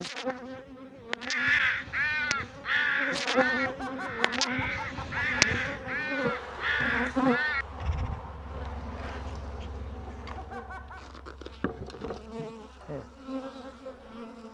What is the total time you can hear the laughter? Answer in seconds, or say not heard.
3 s.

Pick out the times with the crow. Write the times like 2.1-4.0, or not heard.
1.2-8.2.